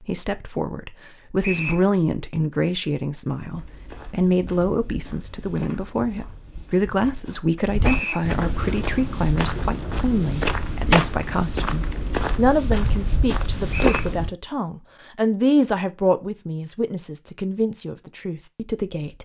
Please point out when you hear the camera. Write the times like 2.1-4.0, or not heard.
not heard.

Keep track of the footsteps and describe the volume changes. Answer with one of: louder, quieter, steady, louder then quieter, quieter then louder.
louder.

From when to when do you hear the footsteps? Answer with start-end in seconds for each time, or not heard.
3.5-14.3.